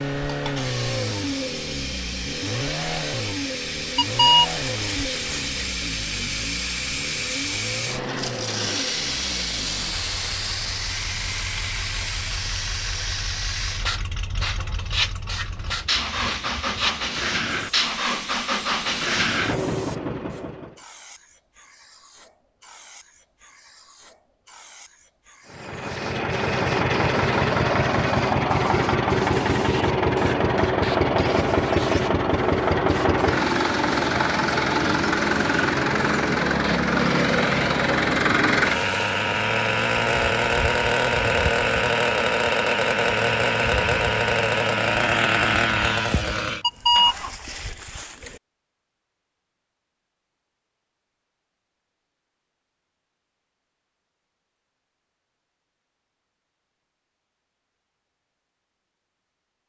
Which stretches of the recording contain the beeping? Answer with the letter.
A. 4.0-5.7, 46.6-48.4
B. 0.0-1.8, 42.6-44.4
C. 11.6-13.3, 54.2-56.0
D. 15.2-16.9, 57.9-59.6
A.